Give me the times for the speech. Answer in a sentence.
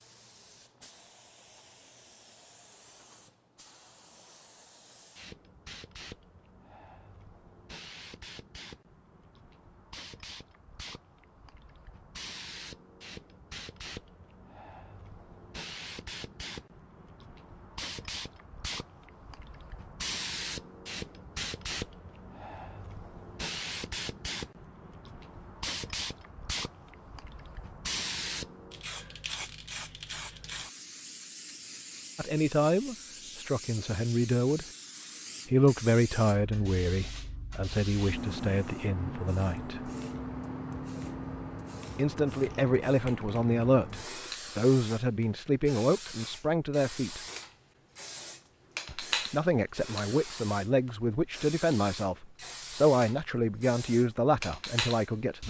The speech can be heard from 32.1 to 34.6 s, from 35.5 to 39.9 s, from 42.0 to 47.2 s and from 48.9 to 55.4 s.